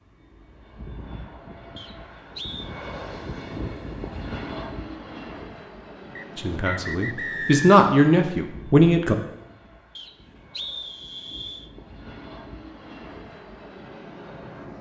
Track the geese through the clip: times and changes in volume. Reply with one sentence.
The geese can't be heard in this clip.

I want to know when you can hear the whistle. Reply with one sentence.
The whistle can be heard from 1.8 to 2.7 s, from 6.2 to 7.7 s and from 9.9 to 11.7 s.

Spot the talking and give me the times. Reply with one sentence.
You can hear the talking from 6.3 to 9.2 s.